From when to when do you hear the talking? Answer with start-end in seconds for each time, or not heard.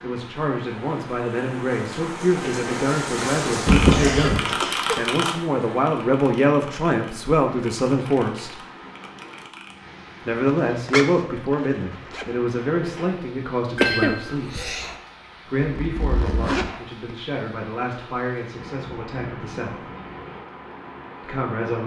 0.0-8.6, 10.2-14.6, 15.4-19.9, 21.2-21.8.